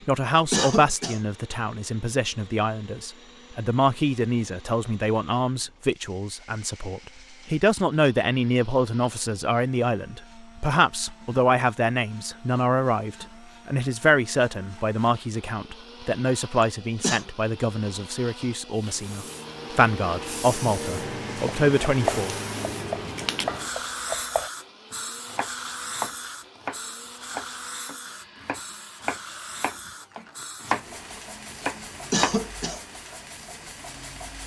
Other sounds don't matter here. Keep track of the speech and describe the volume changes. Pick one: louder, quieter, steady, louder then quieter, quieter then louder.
steady.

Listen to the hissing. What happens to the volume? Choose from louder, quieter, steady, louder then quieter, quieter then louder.
quieter.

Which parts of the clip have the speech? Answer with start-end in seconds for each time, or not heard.
0.1-22.4.